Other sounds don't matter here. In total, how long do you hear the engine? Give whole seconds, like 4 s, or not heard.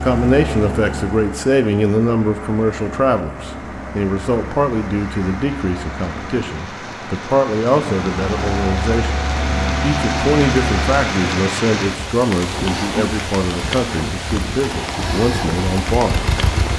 17 s.